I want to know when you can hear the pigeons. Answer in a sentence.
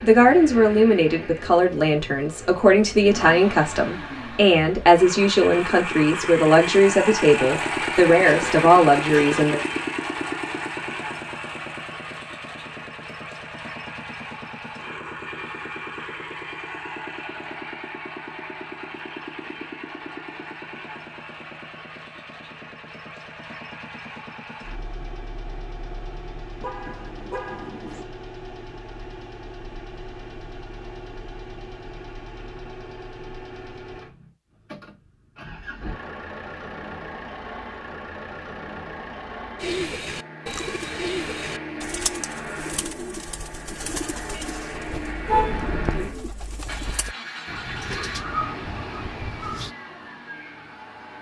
You can hear the pigeons from 39.5 to 49.8 s.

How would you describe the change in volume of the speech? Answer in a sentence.
The loudness of the speech stays about the same.